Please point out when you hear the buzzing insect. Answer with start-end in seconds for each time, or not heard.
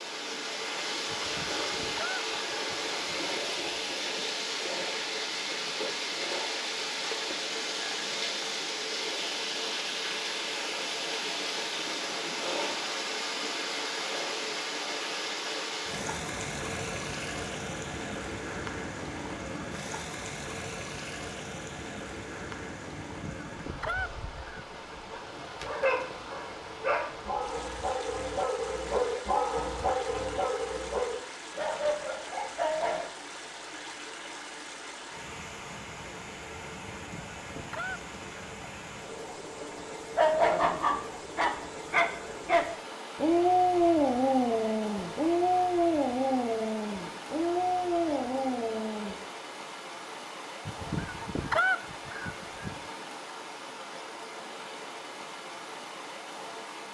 not heard.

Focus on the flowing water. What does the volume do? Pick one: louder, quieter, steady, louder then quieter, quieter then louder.
quieter.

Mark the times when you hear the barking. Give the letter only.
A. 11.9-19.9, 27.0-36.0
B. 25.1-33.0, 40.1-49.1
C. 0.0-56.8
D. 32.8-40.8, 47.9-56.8
B.